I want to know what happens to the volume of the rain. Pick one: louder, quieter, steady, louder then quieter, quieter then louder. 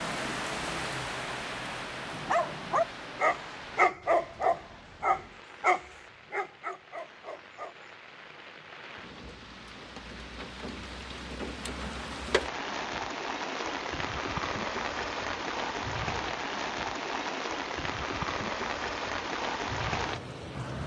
quieter then louder.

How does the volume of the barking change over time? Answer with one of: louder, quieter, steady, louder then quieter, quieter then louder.
quieter.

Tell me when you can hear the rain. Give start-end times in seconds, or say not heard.
0.0-20.8.